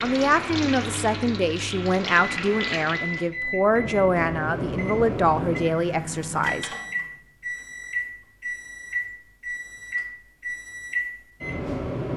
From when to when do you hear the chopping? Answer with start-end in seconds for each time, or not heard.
not heard.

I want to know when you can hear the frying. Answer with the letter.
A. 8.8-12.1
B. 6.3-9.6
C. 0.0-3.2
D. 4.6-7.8
C.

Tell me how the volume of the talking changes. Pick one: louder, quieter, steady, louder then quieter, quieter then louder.
steady.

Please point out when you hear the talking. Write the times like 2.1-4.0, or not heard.
0.0-6.7.